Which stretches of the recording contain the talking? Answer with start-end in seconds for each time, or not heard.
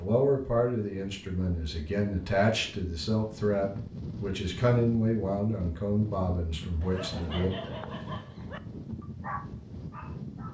0.0-7.5.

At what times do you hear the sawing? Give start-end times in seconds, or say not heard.
not heard.